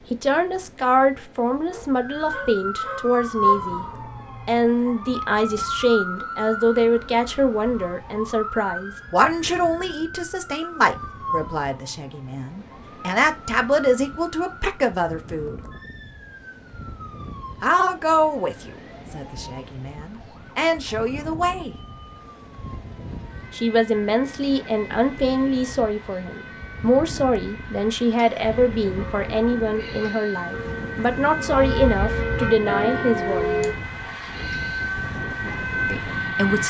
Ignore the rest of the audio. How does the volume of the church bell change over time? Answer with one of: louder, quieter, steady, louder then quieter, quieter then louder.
louder.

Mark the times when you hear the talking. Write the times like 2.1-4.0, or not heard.
0.1-3.9, 4.5-15.6, 17.6-21.8, 23.5-33.5, 35.9-36.6.